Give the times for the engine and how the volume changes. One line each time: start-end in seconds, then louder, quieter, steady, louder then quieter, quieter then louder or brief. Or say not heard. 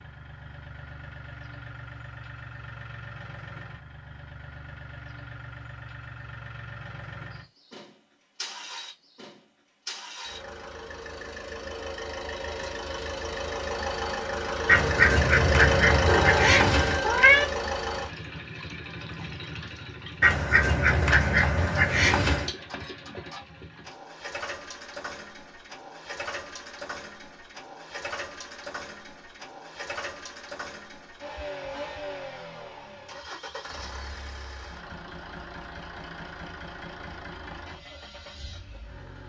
0.0-39.2 louder then quieter.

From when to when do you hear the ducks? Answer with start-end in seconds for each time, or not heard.
14.7-17.0, 20.2-22.5.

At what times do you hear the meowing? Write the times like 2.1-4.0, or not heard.
16.1-17.4.